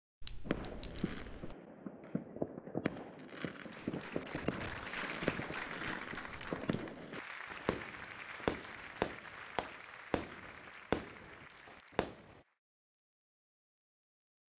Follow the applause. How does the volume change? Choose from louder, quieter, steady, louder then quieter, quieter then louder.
quieter.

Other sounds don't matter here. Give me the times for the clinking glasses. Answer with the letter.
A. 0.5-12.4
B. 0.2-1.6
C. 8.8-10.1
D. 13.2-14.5
B.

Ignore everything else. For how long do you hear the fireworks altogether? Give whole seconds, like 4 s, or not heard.
12 s.